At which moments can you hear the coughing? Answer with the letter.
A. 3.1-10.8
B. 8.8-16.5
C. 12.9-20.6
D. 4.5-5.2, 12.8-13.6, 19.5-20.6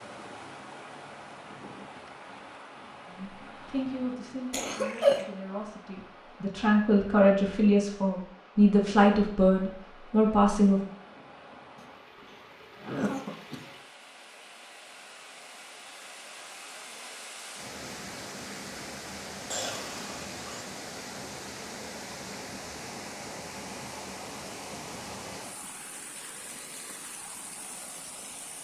D.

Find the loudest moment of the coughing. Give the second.
5 s.